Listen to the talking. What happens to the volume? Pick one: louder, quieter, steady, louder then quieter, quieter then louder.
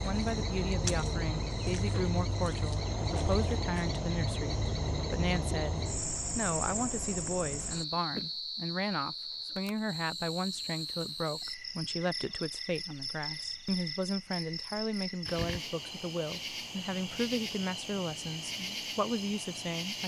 steady.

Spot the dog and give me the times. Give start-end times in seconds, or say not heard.
not heard.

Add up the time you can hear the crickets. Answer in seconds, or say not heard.
20 s.